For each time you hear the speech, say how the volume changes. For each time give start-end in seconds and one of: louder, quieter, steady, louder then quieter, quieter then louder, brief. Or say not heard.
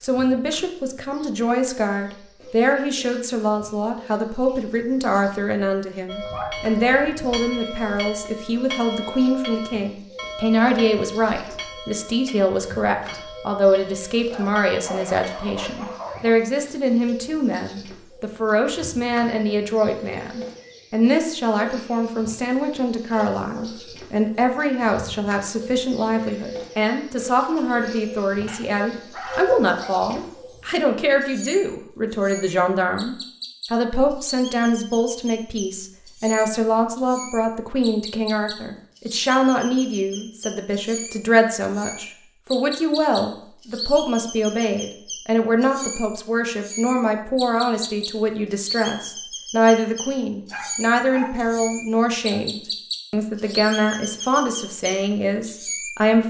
0.0-56.2 steady.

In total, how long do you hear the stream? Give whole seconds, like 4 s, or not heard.
not heard.